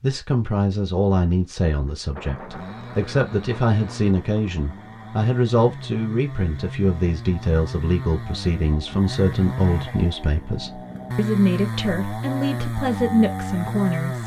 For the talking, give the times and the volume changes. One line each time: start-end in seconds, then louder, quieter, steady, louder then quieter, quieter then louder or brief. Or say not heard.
0.0-14.2 steady.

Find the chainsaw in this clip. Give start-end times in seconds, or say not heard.
2.4-14.2.